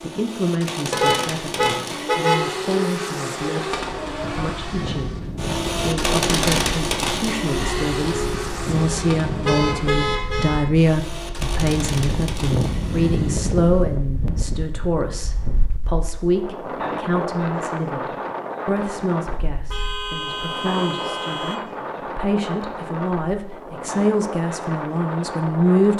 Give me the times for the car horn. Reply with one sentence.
The car horn can be heard from 0.9 to 2.5 s, from 9.4 to 10.7 s and from 19.7 to 21.6 s.